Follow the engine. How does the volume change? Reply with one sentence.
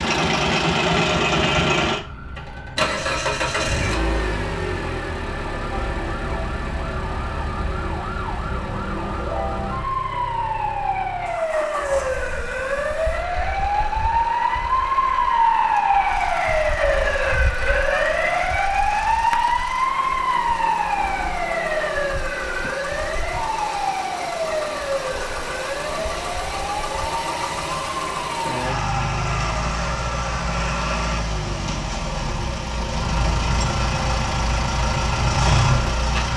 The loudness of the engine goes down, then up.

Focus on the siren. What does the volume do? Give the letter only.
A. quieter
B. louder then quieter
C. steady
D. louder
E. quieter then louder
B.